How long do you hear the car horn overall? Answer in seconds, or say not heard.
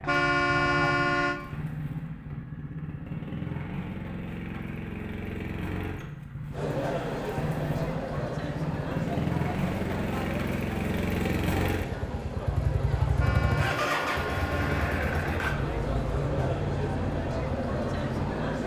3 s.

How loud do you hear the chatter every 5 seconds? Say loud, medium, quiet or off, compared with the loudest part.
off, loud, loud, loud.